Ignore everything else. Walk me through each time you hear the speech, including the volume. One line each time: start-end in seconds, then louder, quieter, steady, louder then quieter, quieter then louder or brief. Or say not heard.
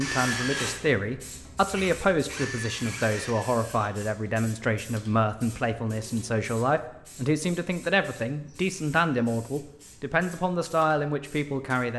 0.0-11.9 steady.